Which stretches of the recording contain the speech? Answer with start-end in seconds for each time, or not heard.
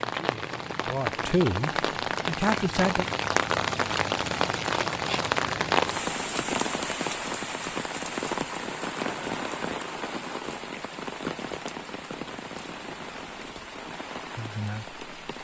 0.1-3.0, 14.3-15.1.